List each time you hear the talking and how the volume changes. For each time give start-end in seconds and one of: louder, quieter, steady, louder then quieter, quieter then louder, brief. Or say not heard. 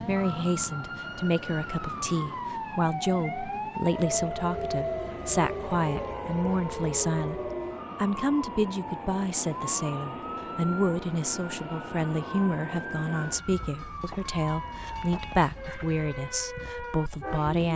0.1-17.7 steady.